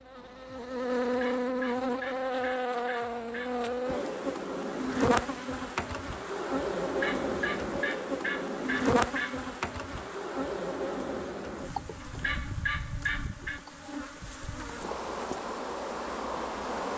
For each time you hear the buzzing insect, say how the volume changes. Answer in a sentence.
You can hear the buzzing insect from 0.1 to 16.9 s, getting quieter.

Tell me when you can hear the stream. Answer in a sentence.
The stream can't be heard in this clip.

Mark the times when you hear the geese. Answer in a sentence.
The geese can be heard from 1.0 to 3.6 s, from 6.8 to 9.4 s and from 12.0 to 13.6 s.